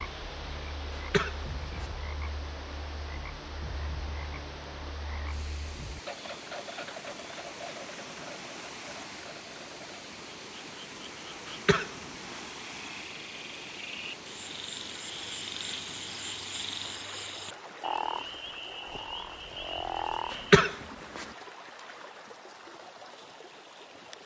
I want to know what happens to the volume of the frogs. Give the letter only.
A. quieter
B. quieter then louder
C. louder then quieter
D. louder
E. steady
D.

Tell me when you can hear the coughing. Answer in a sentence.
You can hear the coughing from 0.9 to 1.9 s, from 11.4 to 12.4 s and from 20.3 to 21.2 s.